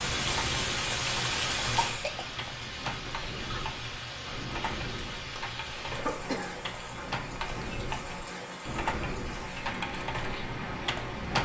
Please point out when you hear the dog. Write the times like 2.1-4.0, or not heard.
not heard.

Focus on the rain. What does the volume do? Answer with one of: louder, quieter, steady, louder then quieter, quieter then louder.
quieter.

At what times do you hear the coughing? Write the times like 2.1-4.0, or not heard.
1.8-2.2, 5.9-6.5.